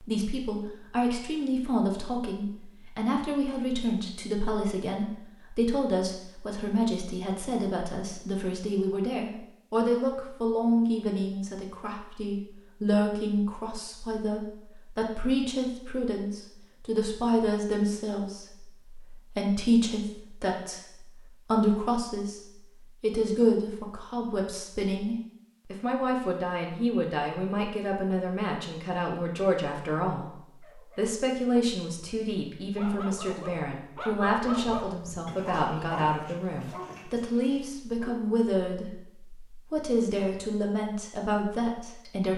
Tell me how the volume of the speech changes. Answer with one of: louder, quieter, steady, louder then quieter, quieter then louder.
steady.